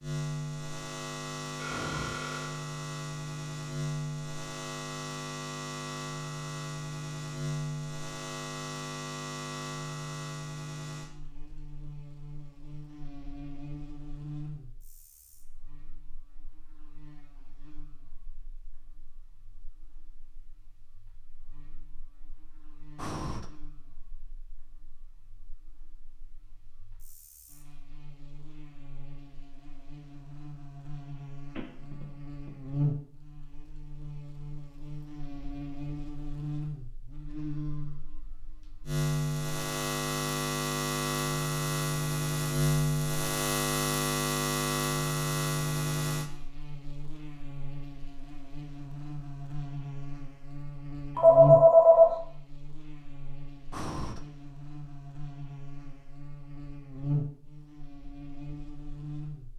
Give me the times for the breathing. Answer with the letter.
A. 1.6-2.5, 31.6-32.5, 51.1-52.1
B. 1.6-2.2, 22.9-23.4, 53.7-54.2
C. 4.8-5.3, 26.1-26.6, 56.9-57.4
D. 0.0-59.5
B.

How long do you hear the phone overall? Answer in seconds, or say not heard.
3 s.